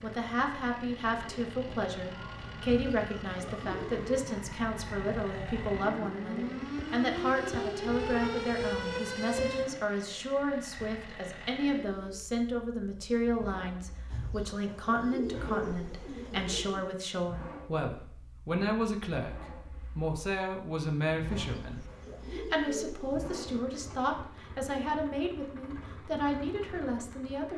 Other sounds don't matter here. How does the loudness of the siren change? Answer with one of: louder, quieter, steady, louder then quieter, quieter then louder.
louder.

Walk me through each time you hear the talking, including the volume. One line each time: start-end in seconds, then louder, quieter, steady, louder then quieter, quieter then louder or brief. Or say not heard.
0.0-27.5 steady.